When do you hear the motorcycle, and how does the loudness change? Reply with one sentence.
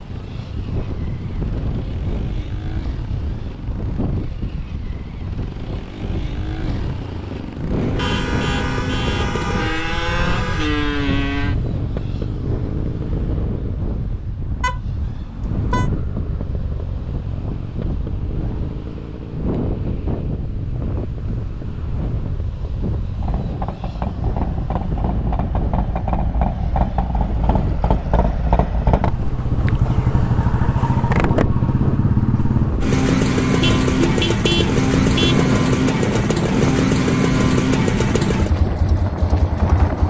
The motorcycle can be heard from 0.0 to 13.8 s, getting louder; and from 15.4 to 40.0 s, getting louder.